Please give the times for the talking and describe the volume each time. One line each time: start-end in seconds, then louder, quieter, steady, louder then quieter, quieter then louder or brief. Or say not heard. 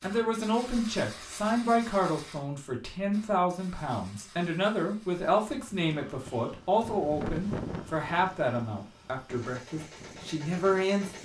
0.0-11.2 steady.